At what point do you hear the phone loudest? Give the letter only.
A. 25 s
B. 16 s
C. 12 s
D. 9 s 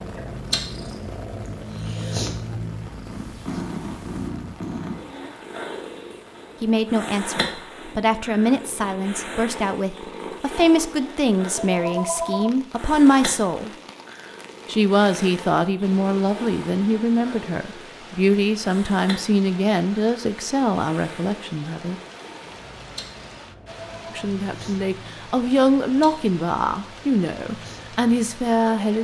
C.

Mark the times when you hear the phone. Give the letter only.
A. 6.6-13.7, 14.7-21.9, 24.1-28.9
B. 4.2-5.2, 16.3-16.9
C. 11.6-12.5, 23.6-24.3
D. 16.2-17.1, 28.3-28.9
C.